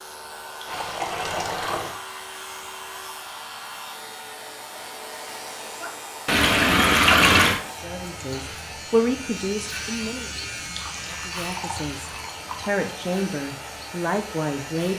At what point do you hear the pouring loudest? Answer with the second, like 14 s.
7 s.